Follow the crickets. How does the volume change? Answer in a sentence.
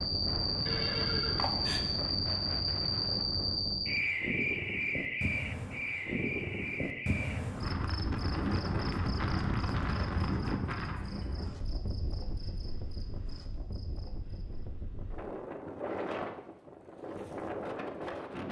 The loudness of the crickets goes down.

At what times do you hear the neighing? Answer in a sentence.
The neighing can be heard from 0.7 to 1.9 s.